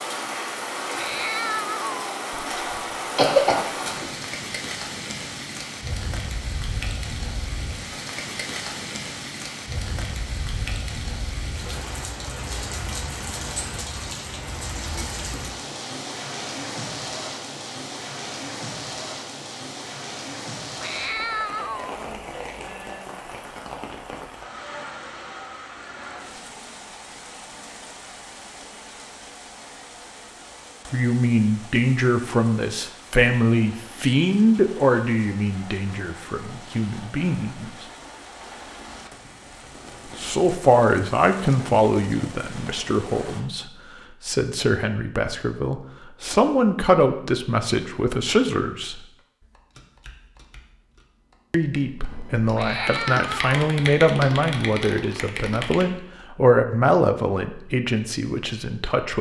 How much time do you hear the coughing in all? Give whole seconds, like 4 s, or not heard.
2 s.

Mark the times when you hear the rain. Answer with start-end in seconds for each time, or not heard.
0.0-43.5.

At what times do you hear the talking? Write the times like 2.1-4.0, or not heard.
30.9-37.9, 40.1-49.0, 51.5-59.1.